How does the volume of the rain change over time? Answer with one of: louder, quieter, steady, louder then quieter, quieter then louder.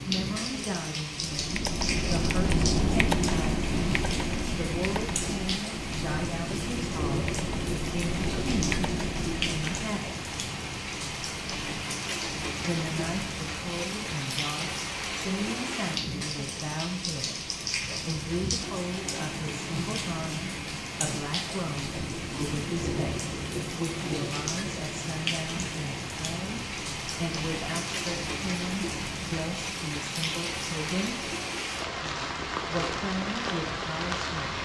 steady.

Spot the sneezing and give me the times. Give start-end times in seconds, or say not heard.
not heard.